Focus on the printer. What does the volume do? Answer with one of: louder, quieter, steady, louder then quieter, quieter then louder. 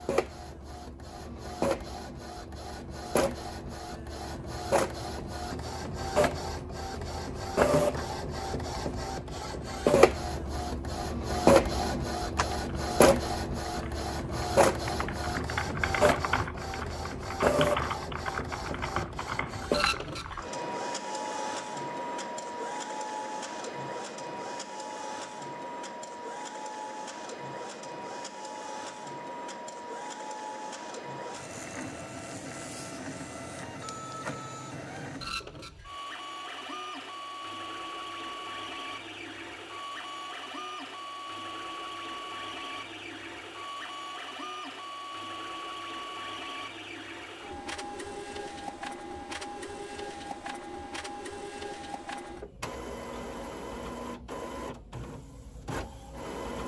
quieter.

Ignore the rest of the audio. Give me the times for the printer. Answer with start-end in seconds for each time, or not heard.
0.0-56.6.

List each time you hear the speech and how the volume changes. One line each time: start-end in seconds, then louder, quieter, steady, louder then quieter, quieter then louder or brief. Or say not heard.
not heard.